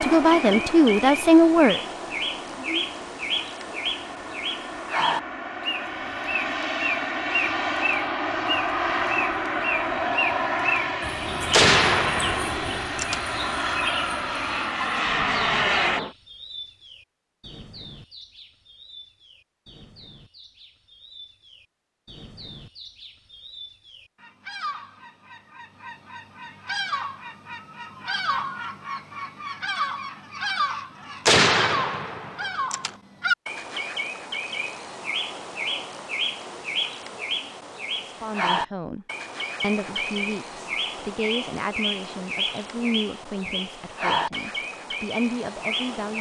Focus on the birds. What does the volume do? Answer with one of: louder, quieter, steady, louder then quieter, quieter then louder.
quieter then louder.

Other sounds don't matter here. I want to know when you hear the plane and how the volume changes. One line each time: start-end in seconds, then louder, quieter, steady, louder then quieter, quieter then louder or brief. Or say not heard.
0.0-16.1 louder.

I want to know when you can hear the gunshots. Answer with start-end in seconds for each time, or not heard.
11.5-13.2, 31.2-32.9.